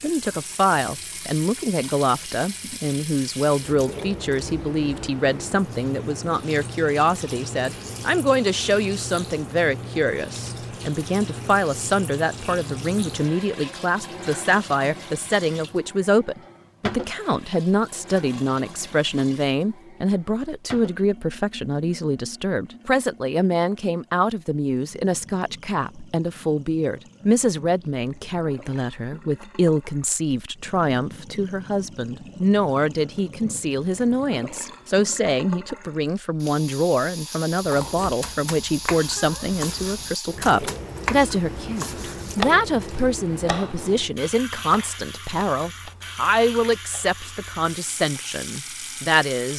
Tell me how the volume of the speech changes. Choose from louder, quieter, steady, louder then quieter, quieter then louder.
steady.